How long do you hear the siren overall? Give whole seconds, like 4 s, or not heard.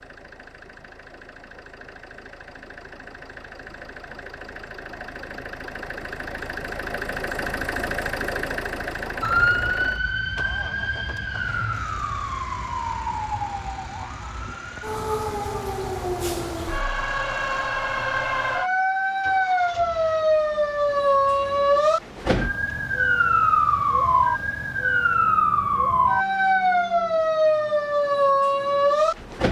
20 s.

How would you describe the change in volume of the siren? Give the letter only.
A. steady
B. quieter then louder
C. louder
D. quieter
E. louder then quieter
C.